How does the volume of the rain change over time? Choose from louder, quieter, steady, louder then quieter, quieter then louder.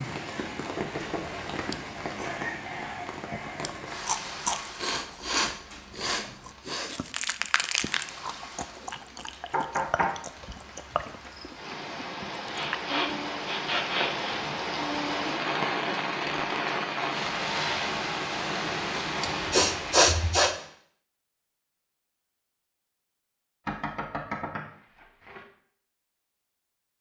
quieter then louder.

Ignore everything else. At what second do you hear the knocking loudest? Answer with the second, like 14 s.
10 s.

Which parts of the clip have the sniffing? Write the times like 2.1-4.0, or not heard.
4.8-7.0, 12.5-14.3, 19.2-20.6.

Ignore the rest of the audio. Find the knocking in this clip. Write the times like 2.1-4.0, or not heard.
0.8-1.4, 9.5-10.2, 23.6-25.4.